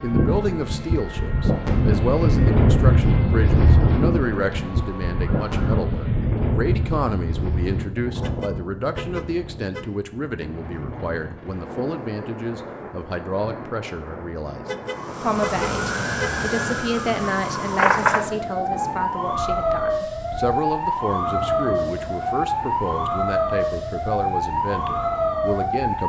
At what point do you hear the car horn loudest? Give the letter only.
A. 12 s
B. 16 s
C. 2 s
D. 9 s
B.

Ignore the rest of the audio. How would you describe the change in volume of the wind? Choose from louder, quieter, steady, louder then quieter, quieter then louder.
quieter.